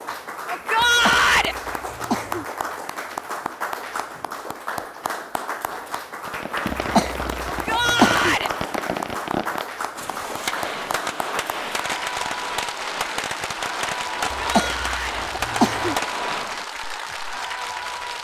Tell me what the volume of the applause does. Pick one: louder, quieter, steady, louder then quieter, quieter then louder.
steady.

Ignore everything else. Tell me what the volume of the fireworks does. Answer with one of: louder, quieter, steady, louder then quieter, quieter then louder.
steady.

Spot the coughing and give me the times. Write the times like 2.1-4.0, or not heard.
0.8-2.5, 6.7-8.3, 14.3-15.9.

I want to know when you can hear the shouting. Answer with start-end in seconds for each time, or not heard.
0.5-1.6, 7.5-8.5, 14.4-15.2.